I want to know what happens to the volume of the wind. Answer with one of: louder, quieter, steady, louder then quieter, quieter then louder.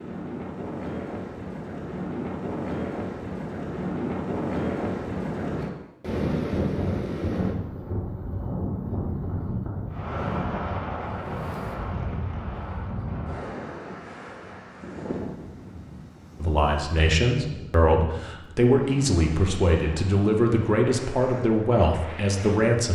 quieter.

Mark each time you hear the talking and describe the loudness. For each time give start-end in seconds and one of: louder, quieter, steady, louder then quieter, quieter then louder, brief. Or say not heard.
16.4-22.9 steady.